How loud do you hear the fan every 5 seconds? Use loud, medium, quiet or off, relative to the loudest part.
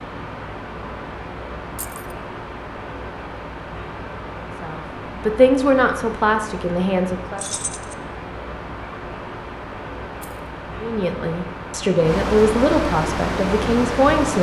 medium, medium, loud.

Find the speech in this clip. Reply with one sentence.
You can hear the speech from 4.6 to 7.5 s and from 10.8 to 14.3 s.